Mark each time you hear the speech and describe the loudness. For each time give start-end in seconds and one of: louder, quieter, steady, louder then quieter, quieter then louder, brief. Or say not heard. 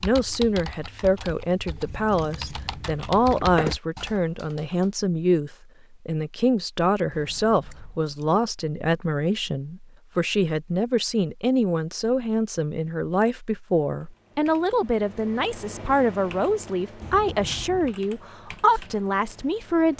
0.0-19.9 steady.